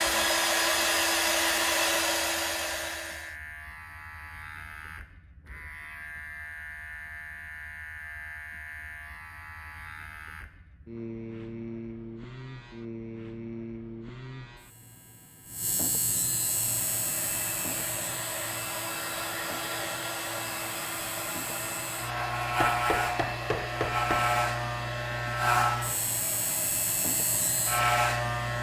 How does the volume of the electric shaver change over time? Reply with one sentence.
The loudness of the electric shaver goes up.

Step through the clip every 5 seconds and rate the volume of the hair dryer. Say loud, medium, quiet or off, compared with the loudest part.
loud, off, off, medium, medium, quiet.